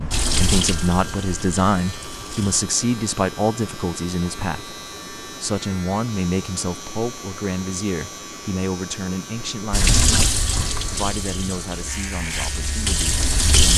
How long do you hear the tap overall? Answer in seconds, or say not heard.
7 s.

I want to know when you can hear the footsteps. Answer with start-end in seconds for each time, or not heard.
not heard.